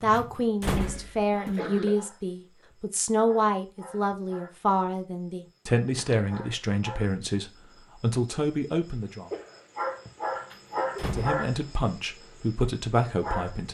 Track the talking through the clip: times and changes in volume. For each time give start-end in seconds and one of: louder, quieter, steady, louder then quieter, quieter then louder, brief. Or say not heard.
0.0-9.3 steady
11.1-13.6 brief.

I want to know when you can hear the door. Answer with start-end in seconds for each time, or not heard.
0.1-1.6, 10.5-11.4.